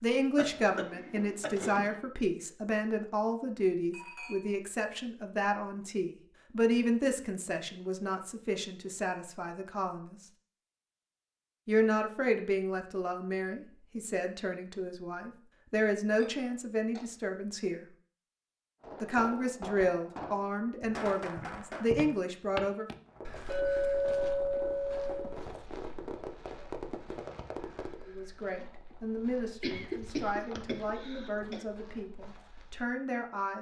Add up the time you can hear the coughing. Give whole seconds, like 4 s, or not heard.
4 s.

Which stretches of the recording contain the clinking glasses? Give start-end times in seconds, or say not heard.
3.9-4.5, 16.2-17.0, 23.4-25.4.